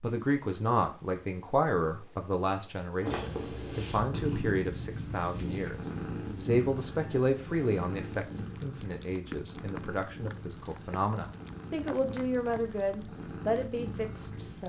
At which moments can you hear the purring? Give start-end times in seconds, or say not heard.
3.0-14.6.